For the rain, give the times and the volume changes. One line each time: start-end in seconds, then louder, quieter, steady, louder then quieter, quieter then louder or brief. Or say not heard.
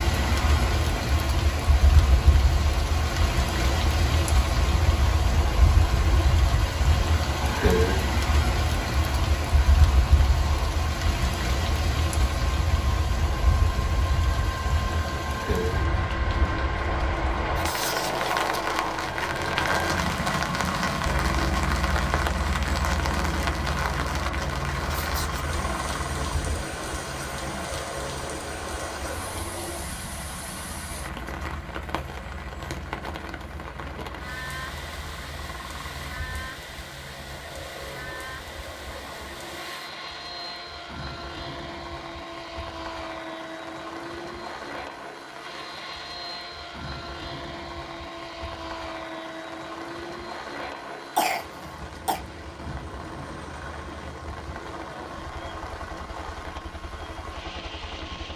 0.0-58.3 quieter.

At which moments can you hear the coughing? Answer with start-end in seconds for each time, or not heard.
51.1-52.2.